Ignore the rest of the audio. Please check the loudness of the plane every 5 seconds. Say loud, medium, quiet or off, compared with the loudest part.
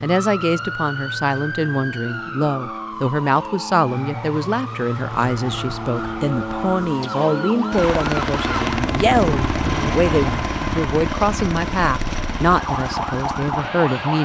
medium, loud, loud.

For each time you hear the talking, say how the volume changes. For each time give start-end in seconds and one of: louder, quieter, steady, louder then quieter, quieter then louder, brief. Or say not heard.
0.0-14.2 steady.